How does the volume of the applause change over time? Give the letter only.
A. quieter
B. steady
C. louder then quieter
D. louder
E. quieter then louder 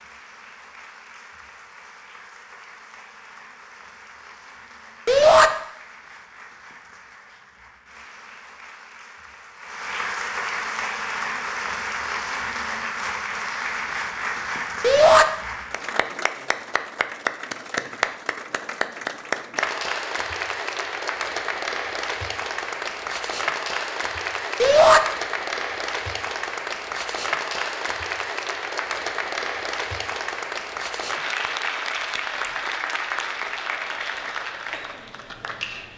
D.